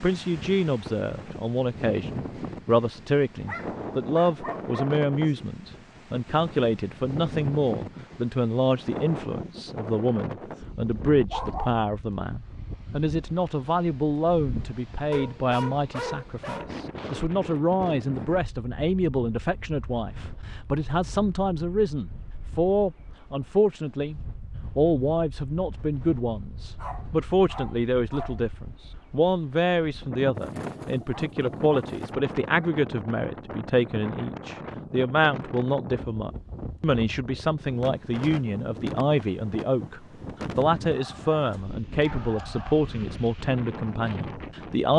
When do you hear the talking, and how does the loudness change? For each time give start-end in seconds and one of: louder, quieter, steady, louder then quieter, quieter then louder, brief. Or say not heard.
0.0-44.9 steady.